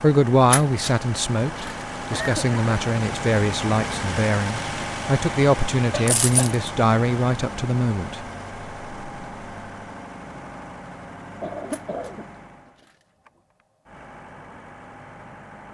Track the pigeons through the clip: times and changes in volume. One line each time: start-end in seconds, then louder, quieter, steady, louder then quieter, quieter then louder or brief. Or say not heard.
not heard.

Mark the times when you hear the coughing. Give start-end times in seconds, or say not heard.
2.1-2.6, 5.9-6.5, 11.4-12.2.